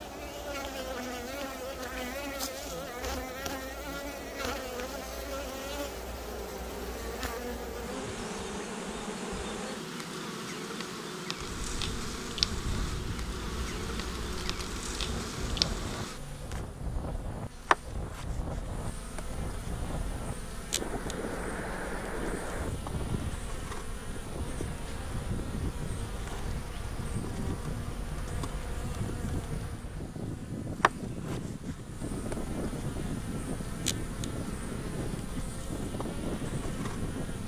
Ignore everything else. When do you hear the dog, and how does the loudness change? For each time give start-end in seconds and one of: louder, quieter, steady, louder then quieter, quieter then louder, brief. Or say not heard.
not heard.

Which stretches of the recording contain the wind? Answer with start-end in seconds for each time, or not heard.
11.3-37.4.